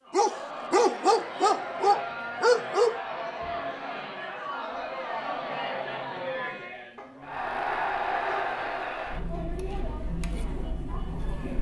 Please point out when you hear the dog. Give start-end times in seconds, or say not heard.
0.1-3.0, 7.0-8.6.